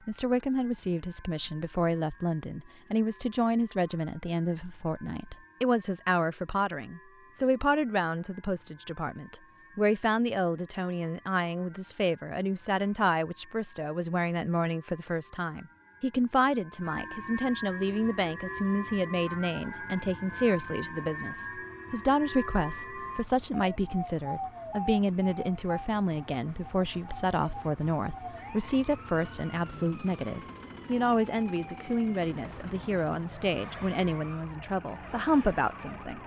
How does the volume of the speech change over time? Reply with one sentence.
The volume of the speech stays about the same.